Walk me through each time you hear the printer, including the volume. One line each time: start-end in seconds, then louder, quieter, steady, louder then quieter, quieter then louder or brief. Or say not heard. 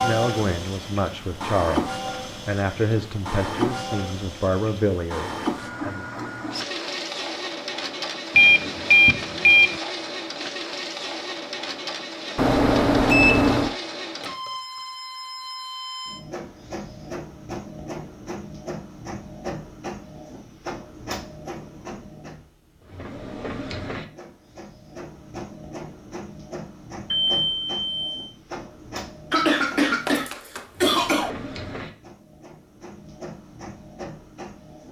0.0-34.8 quieter.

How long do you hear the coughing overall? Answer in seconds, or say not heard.
2 s.